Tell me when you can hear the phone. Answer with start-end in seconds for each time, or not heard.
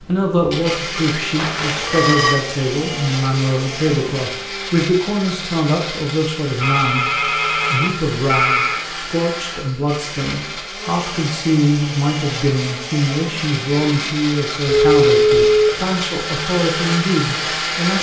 1.4-2.4, 6.6-8.8, 14.7-15.8.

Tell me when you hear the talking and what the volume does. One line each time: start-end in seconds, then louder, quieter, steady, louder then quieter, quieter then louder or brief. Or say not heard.
0.1-7.1 steady
7.7-17.9 steady.